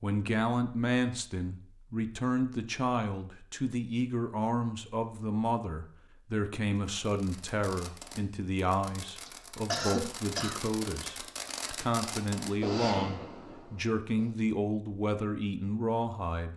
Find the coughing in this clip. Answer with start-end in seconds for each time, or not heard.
9.2-10.6.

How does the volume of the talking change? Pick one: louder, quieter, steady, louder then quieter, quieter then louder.
steady.